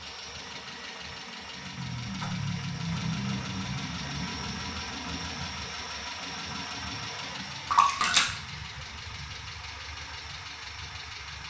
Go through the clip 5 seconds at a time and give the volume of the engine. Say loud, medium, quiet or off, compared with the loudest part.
loud, loud, medium.